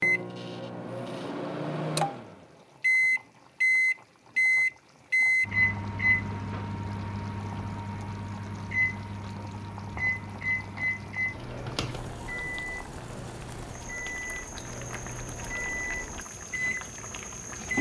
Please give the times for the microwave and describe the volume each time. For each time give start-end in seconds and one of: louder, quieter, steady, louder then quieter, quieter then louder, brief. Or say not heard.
0.0-17.7 quieter.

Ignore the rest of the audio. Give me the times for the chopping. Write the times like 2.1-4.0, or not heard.
not heard.